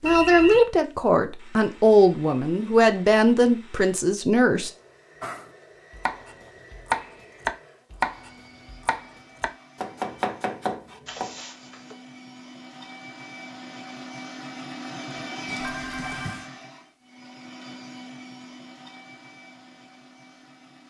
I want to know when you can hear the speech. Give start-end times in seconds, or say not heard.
0.0-4.7.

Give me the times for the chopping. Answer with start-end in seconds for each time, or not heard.
5.2-11.3.